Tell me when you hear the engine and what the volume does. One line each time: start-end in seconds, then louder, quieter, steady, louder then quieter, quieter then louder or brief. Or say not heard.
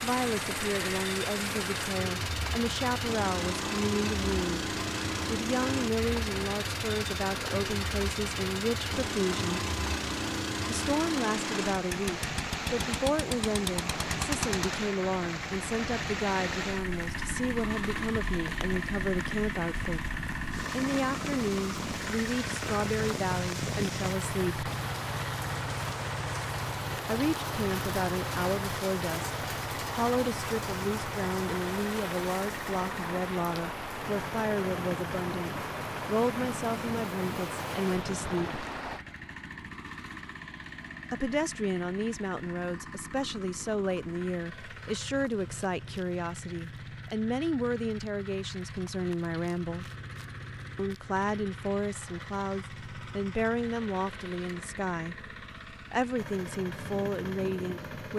0.0-58.1 quieter.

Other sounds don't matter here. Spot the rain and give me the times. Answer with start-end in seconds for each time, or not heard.
0.0-39.0.